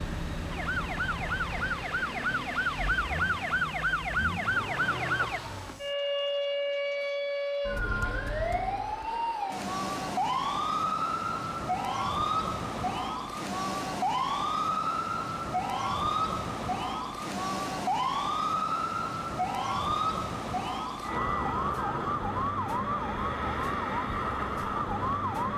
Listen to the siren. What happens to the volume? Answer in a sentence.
The volume of the siren stays about the same.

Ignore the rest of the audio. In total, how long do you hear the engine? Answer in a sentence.
The engine can be heard for 6 seconds in total.